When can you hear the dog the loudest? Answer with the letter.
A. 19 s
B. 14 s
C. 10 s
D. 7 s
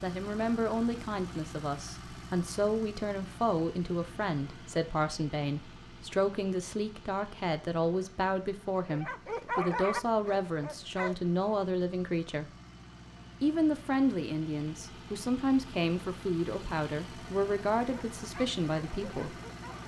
C.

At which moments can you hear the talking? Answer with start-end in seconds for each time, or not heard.
0.0-12.5, 13.4-19.4.